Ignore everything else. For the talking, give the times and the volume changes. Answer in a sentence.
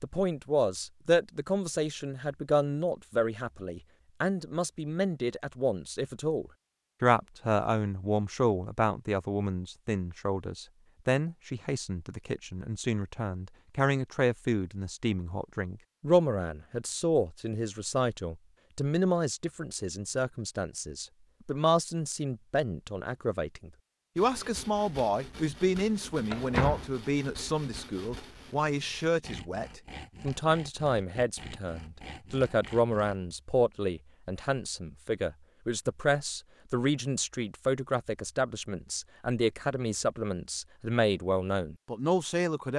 You can hear the talking from 0.0 to 42.7 s, at a steady volume.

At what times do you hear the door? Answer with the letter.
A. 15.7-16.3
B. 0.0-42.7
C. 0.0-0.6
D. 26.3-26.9
D.